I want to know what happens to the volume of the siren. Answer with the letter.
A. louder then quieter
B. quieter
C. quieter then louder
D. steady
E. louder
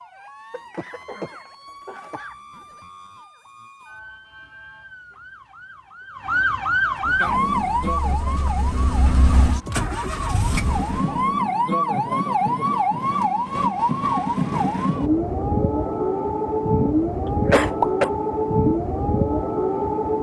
E.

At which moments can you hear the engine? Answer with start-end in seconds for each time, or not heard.
7.0-11.2.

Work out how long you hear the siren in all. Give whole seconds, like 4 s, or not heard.
20 s.